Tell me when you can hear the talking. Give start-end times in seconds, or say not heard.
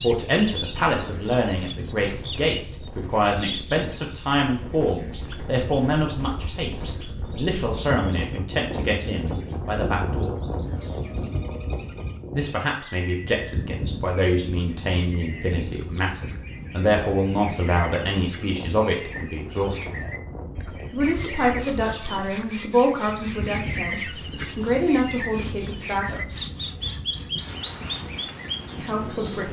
0.0-10.3, 12.3-19.9, 20.9-26.2, 28.8-29.4.